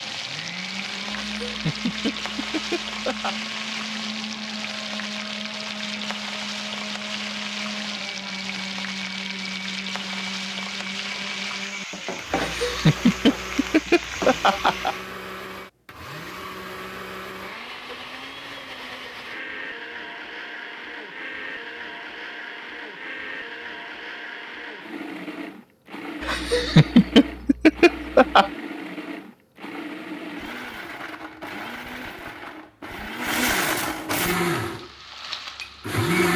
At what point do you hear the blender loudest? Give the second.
34 s.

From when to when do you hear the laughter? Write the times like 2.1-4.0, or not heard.
1.2-3.4, 12.3-14.9, 26.2-28.5.